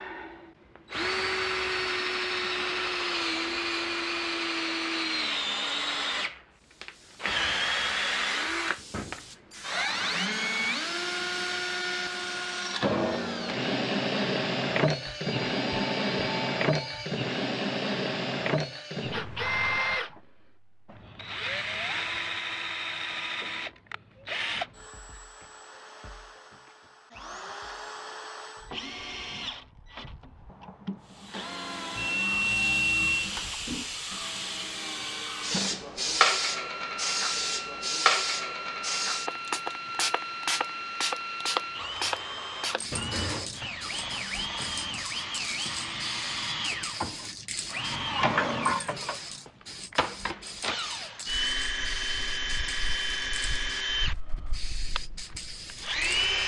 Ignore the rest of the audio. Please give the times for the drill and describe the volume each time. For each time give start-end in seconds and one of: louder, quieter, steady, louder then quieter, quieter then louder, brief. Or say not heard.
0.0-56.4 quieter then louder.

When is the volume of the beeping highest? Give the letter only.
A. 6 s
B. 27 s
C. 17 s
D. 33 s
D.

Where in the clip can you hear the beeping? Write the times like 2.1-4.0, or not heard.
15.1-17.1, 31.9-33.3.